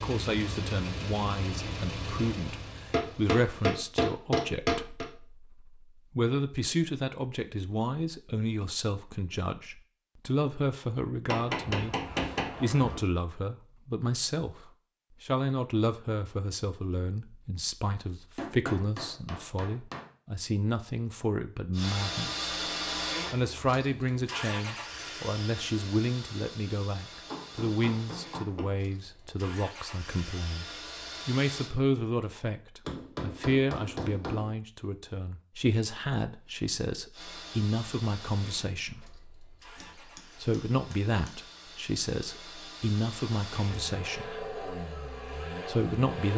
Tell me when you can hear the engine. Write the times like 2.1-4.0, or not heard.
0.0-3.8, 21.7-31.8, 37.1-46.3.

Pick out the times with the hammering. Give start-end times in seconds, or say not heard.
2.9-5.0, 11.2-13.0, 18.4-20.1, 27.3-28.7, 32.9-34.5, 39.8-41.4.